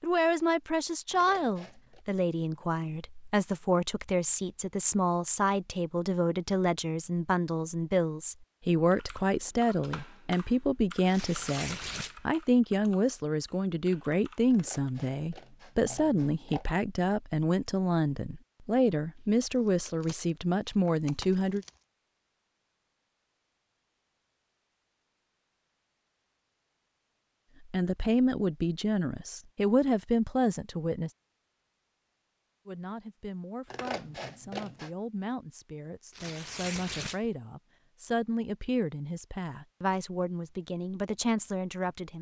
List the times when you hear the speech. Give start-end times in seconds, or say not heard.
0.0-21.6, 27.6-31.1, 32.6-42.1.